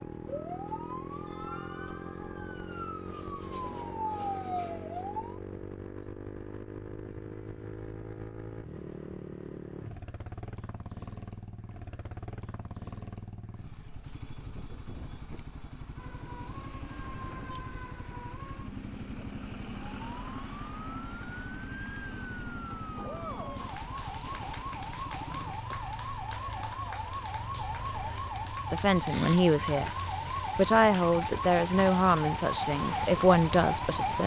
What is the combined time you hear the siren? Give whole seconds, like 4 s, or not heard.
24 s.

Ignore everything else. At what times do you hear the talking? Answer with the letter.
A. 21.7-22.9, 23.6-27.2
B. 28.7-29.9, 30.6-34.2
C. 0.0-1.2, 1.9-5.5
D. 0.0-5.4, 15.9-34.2
B.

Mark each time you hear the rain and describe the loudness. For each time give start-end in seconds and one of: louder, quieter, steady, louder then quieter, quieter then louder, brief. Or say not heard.
not heard.